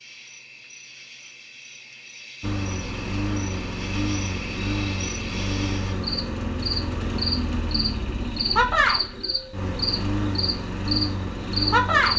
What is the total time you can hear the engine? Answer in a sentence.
The engine can be heard for 10 seconds in total.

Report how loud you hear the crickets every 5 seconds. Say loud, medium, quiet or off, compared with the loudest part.
quiet, loud, loud.